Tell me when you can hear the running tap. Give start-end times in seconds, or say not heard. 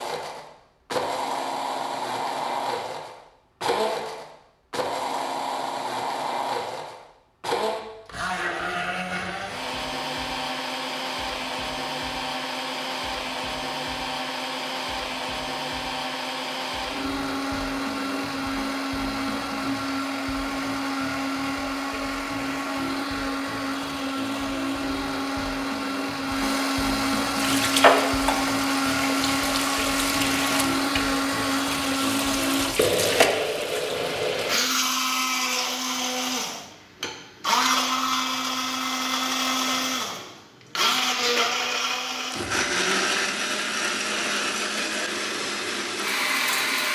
27.4-34.6.